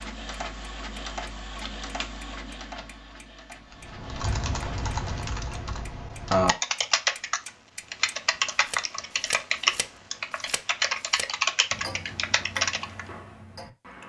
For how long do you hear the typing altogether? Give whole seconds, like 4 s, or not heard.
9 s.